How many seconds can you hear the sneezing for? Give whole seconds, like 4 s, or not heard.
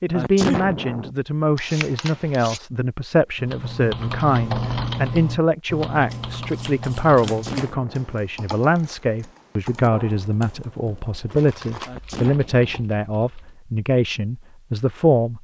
3 s.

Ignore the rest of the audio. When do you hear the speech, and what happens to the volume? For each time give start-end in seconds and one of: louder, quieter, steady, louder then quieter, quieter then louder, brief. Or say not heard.
0.0-15.3 steady.